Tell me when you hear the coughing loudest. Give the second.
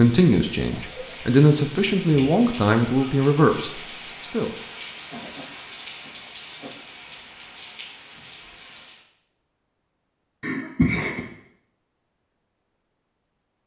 11 s.